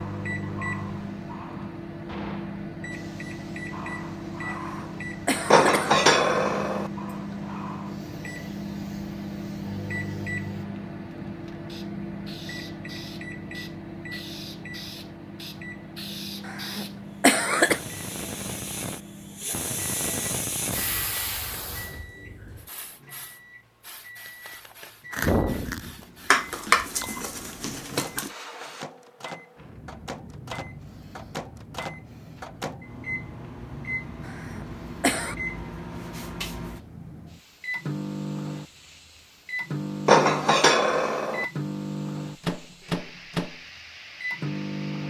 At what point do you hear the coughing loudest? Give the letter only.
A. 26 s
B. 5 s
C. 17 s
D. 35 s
C.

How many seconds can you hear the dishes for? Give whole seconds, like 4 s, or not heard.
5 s.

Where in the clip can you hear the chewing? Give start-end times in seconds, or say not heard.
25.1-27.2.